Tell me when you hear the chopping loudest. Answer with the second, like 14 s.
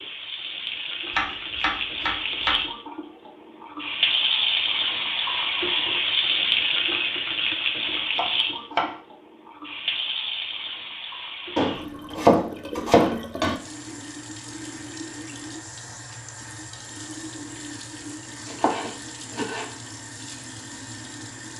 12 s.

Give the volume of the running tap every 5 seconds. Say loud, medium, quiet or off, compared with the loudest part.
loud, loud, medium, quiet, quiet.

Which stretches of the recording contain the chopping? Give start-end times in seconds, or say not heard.
1.1-2.6, 8.2-8.9, 11.6-13.6, 18.4-19.7.